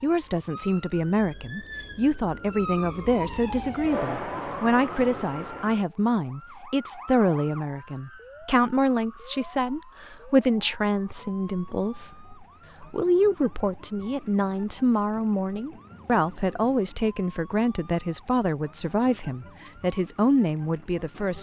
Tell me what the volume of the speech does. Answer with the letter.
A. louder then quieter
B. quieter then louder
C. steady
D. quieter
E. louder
C.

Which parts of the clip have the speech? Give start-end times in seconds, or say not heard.
0.0-21.3.